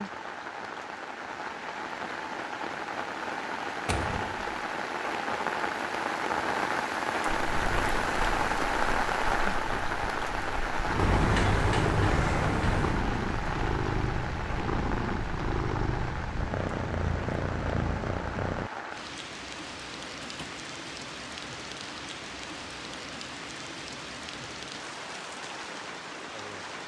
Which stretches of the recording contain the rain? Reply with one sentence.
The rain can be heard from 0.0 to 26.8 s.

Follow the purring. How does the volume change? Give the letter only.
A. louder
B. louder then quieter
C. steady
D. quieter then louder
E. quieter
A.